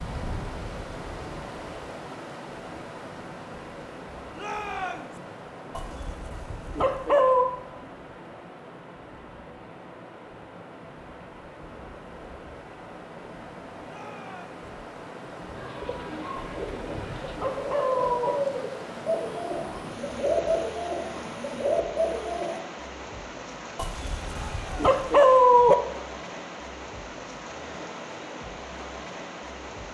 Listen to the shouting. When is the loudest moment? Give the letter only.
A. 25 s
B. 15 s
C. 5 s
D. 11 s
C.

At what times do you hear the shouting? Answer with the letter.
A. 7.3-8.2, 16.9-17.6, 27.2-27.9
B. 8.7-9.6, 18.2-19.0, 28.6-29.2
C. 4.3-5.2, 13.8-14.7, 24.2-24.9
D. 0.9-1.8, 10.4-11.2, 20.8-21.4
C.